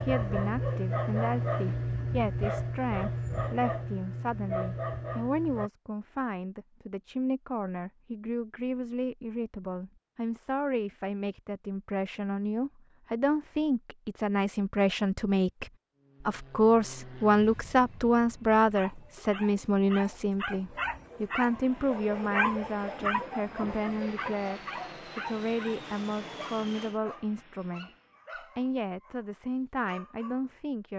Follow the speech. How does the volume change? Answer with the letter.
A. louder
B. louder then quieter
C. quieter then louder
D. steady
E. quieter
B.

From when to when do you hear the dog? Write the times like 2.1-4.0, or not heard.
0.0-5.7, 18.7-30.4.